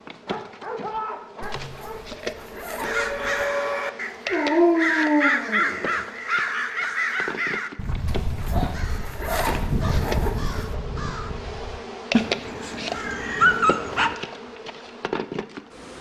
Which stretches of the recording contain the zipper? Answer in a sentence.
You can hear the zipper from 1.4 to 3.5 s and from 8.1 to 10.8 s.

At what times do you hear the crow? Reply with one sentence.
The crow can be heard from 2.8 to 14.5 s.